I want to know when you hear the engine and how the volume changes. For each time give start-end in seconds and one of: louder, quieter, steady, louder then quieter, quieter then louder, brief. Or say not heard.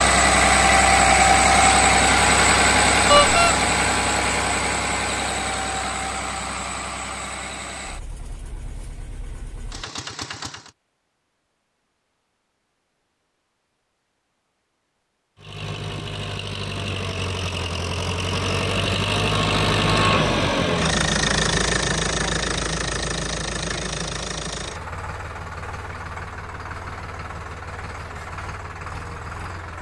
0.0-10.8 quieter
15.3-29.7 louder then quieter.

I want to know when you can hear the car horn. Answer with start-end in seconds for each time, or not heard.
3.0-3.5.